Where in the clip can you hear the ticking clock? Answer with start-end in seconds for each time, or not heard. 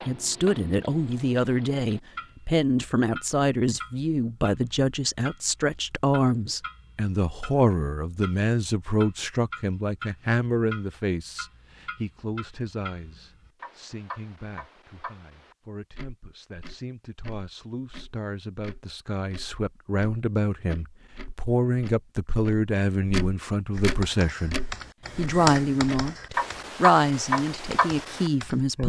0.0-28.8.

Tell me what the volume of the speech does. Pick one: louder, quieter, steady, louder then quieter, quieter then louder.
quieter then louder.